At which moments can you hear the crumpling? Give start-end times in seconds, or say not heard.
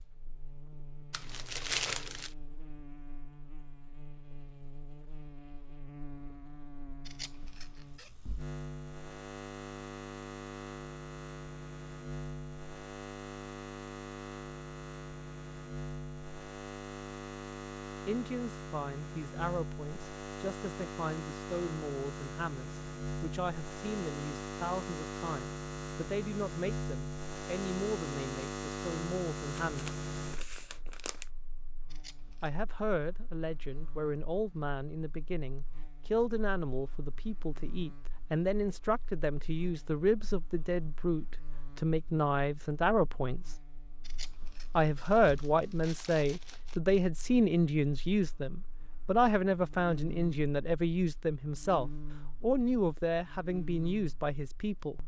1.1-2.3, 29.6-31.2, 45.0-46.8.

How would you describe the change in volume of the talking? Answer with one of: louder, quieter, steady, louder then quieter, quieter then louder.
louder.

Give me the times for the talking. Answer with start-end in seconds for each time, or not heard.
18.1-29.9, 32.4-43.5, 44.8-55.0.